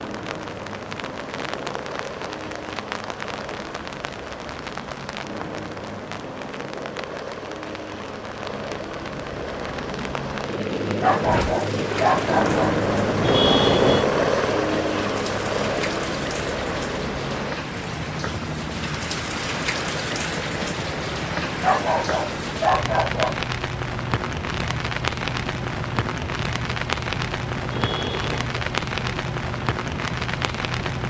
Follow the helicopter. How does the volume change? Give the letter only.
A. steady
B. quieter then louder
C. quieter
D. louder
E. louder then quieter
E.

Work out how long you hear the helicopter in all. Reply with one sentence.
The helicopter can be heard for 31 seconds in total.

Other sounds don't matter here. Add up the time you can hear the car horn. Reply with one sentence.
You can hear the car horn for 2 seconds altogether.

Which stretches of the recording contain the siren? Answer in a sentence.
You can't hear the siren here.